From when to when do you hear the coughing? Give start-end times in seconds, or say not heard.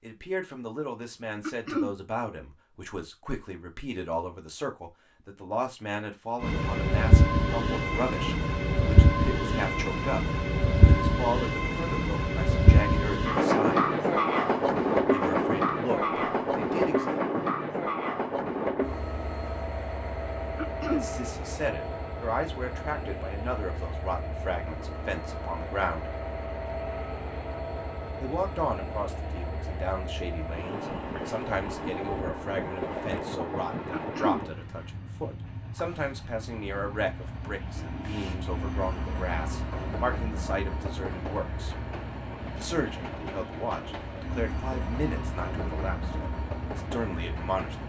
1.4-1.9, 20.6-21.1, 33.9-34.4.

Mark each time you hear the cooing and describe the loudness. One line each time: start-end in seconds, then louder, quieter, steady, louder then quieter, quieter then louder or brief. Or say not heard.
not heard.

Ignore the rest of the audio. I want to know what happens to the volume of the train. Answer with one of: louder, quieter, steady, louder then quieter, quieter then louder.
quieter.